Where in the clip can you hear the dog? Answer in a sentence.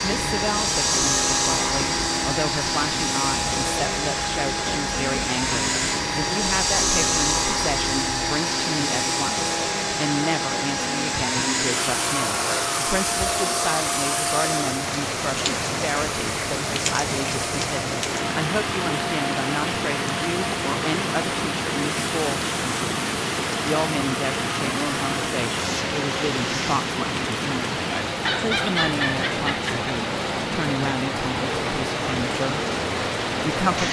You can hear the dog from 28.2 to 29.8 s.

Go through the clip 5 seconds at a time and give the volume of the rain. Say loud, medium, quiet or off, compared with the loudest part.
medium, medium, medium, loud, loud, loud, loud.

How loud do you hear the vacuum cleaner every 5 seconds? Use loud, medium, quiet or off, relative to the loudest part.
loud, loud, loud, medium, medium, medium, medium.